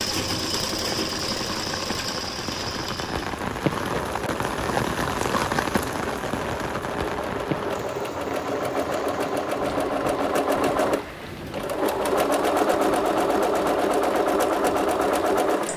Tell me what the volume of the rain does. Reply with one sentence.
The volume of the rain goes up, then down.